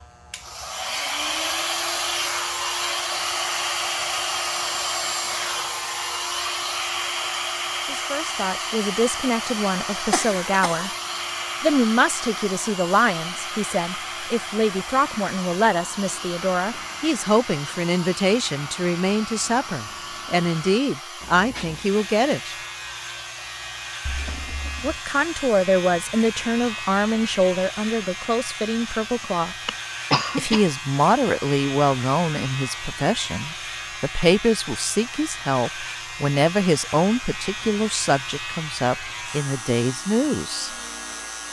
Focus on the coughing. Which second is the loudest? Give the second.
30 s.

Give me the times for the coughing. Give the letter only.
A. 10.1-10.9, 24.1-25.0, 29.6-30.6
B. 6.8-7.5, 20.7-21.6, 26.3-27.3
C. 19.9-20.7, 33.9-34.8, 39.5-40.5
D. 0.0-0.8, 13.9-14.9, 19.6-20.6
A.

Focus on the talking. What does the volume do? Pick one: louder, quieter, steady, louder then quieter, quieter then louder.
steady.